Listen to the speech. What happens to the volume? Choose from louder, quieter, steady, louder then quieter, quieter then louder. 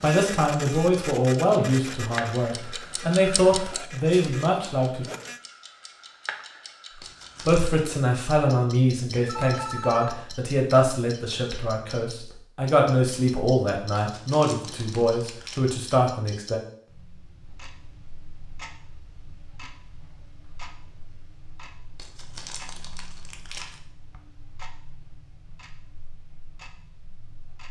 steady.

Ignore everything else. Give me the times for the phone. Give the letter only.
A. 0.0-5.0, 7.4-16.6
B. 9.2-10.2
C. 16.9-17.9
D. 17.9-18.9
B.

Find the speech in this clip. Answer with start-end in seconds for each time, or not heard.
0.0-5.0, 7.4-16.6.